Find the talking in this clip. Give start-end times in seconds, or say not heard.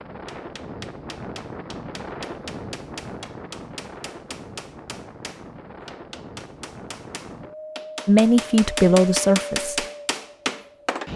8.1-9.8.